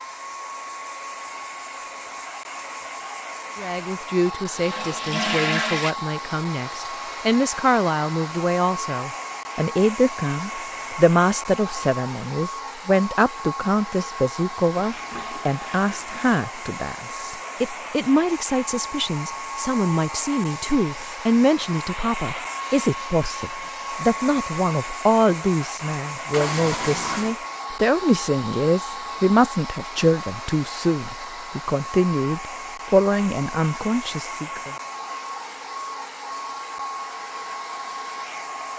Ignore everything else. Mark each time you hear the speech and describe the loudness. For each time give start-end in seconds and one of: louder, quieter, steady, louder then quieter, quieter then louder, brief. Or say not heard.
3.5-34.8 steady.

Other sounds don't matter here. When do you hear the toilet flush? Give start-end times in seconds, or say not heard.
4.2-6.0, 14.8-16.6, 26.3-27.4.